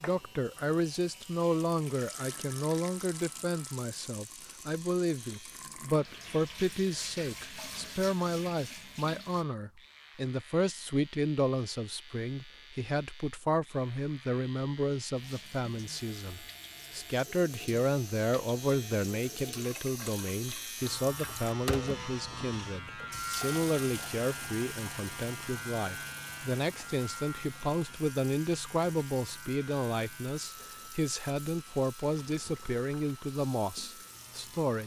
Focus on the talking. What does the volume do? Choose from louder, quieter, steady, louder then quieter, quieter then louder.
steady.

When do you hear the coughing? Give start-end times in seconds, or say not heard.
not heard.